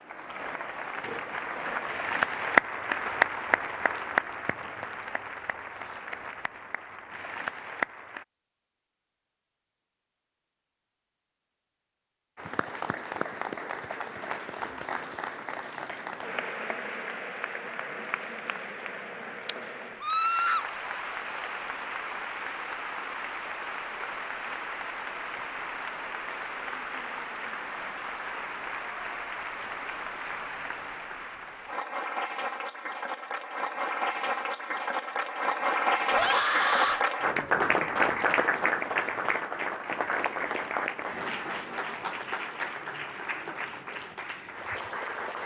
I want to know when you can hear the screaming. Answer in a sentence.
You can hear the screaming from 20.0 to 20.6 s and from 36.1 to 37.0 s.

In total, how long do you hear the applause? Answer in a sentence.
You can hear the applause for 41 seconds altogether.